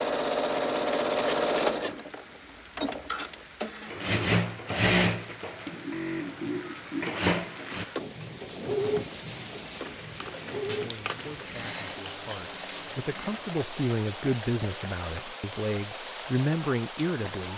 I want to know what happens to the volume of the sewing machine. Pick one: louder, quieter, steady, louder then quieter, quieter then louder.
quieter.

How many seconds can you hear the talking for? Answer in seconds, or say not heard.
7 s.